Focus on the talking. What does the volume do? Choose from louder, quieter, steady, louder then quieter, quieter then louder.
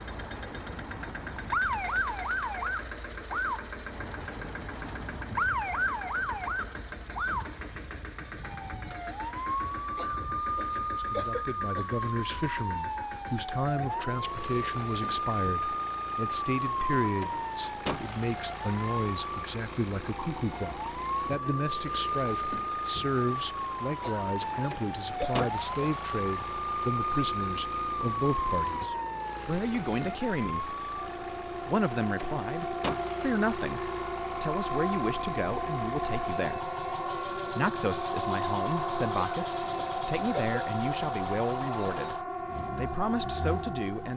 steady.